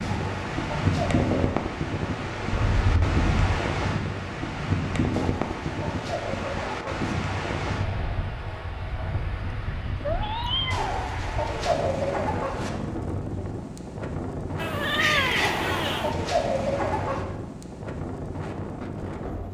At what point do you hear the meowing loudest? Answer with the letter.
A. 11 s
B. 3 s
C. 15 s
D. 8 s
C.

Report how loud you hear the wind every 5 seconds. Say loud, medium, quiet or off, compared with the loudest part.
loud, loud, medium, medium.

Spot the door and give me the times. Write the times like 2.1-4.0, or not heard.
not heard.